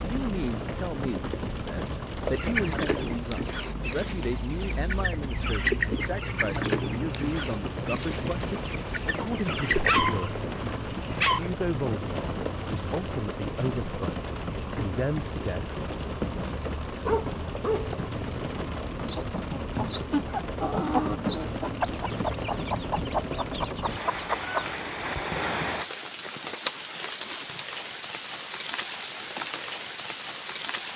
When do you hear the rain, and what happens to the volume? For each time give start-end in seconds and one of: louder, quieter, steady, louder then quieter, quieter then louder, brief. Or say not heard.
0.0-30.9 steady.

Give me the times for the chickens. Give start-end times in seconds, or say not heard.
2.4-10.3, 19.1-24.7.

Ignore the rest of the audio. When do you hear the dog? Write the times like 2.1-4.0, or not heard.
9.8-11.4, 17.1-18.0.